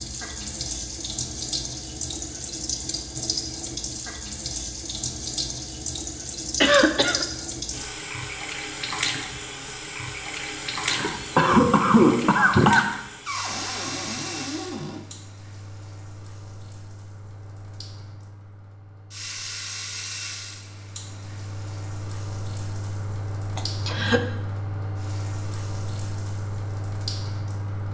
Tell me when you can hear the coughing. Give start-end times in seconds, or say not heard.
6.6-7.2, 10.8-13.0, 23.6-24.2.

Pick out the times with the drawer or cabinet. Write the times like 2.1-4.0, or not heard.
13.2-15.0.